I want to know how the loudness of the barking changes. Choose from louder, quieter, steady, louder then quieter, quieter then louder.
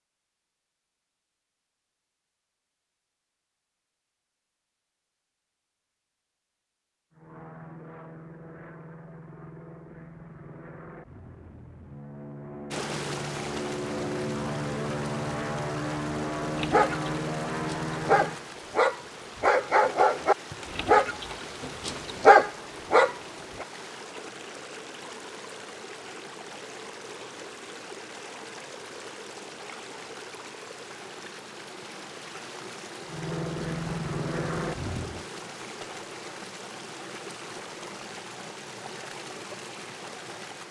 louder.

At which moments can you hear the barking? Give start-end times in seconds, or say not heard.
16.6-23.6.